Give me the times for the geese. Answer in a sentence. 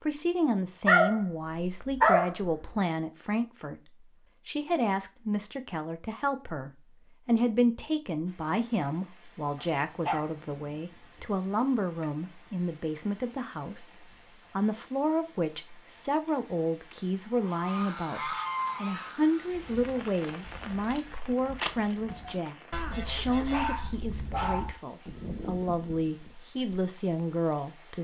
You can hear the geese from 17.4 to 26.4 s.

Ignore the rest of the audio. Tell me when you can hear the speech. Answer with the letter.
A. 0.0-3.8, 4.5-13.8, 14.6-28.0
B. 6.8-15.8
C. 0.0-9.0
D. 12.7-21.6
A.